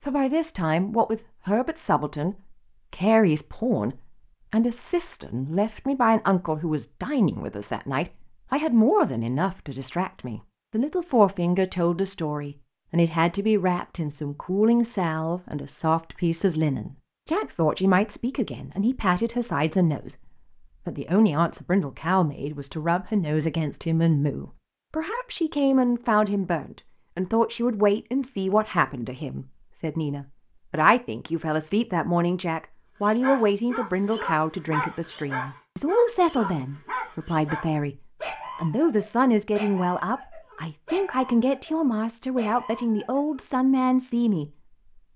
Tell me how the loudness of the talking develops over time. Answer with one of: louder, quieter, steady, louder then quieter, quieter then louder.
steady.